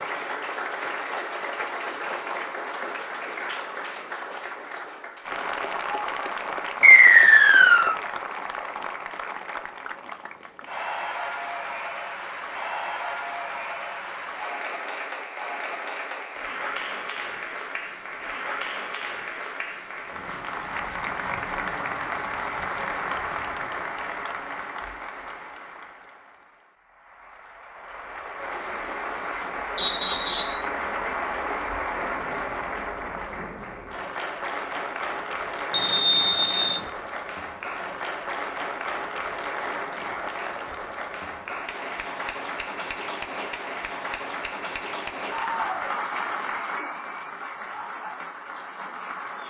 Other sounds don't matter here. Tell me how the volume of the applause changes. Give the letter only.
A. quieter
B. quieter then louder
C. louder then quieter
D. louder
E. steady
E.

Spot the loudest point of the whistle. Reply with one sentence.
The volume of the whistle peaks at 7 seconds.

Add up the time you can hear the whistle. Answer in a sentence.
The whistle can be heard for 3 seconds in total.